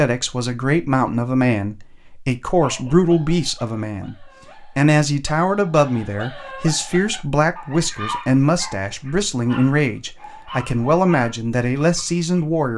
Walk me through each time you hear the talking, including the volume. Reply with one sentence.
You can hear the talking from 0.0 to 12.7 s, at a steady volume.